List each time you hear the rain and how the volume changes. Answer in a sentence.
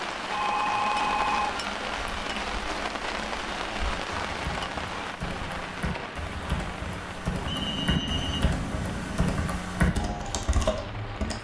You can hear the rain from 0.0 to 11.4 s, getting quieter.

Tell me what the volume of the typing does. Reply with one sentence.
The loudness of the typing goes up.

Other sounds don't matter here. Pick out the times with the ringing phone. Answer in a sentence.
You can hear the ringing phone from 0.3 to 1.6 s and from 7.5 to 9.4 s.